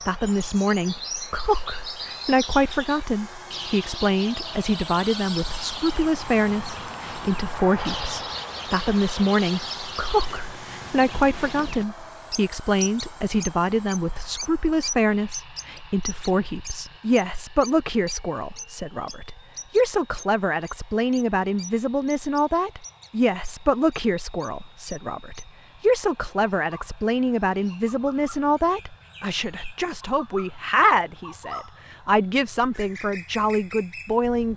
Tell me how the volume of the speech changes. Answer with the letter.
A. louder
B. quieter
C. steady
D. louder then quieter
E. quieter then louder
C.